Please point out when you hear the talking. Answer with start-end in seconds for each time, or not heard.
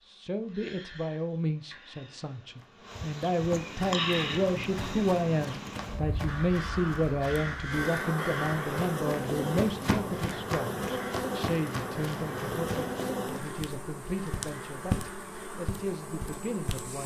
0.1-17.0.